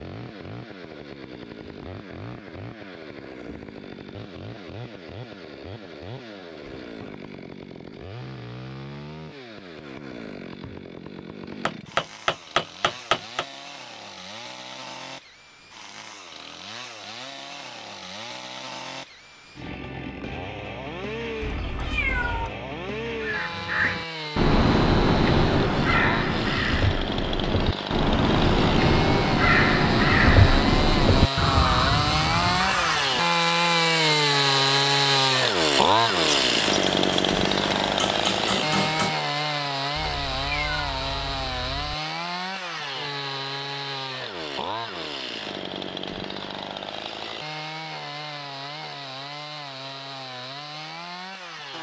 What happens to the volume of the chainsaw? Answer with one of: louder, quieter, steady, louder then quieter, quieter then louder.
louder then quieter.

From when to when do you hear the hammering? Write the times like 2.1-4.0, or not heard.
11.7-13.4, 36.2-39.1.